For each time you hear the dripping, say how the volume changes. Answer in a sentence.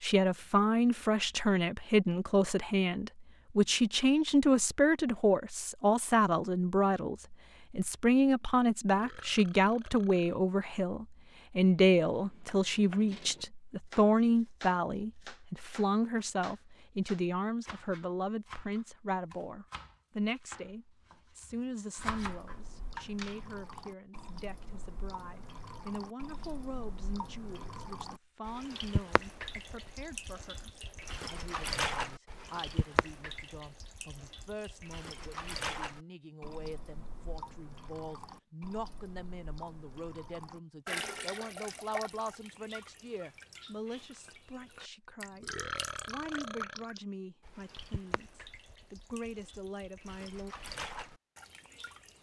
You can hear the dripping from 21.9 to 52.1 s, getting louder then quieter.